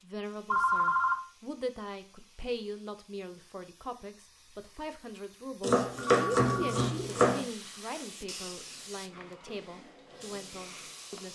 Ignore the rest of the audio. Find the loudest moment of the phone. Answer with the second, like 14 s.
1 s.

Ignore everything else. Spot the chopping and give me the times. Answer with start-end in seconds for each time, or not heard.
5.6-7.5.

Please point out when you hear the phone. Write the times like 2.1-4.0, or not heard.
0.5-1.2, 6.0-6.8.